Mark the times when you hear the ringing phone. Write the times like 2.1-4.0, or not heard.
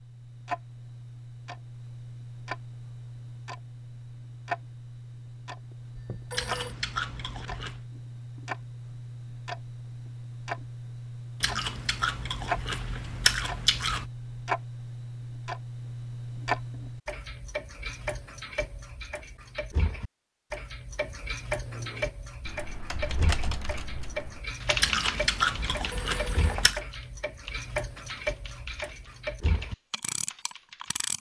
6.0-6.8, 25.8-26.7.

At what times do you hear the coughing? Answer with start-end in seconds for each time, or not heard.
not heard.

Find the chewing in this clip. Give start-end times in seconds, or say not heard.
6.3-7.8, 11.4-14.1, 24.8-26.8.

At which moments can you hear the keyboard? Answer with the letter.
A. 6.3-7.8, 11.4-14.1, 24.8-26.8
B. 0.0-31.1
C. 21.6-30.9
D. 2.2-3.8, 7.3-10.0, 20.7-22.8
C.